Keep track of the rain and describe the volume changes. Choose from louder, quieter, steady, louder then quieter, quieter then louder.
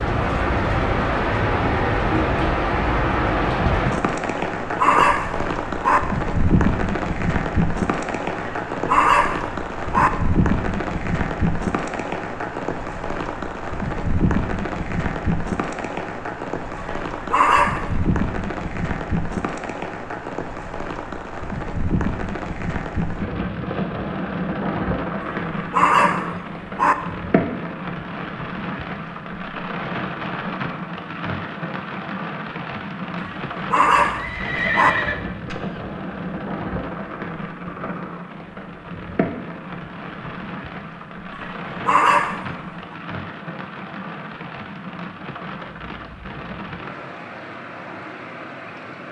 quieter.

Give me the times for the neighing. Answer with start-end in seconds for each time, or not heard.
34.1-35.8.